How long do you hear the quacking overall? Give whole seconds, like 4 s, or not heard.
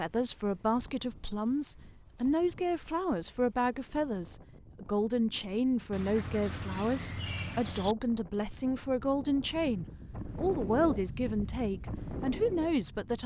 2 s.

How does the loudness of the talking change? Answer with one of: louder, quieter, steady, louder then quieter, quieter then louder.
steady.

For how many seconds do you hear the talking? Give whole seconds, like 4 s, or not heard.
13 s.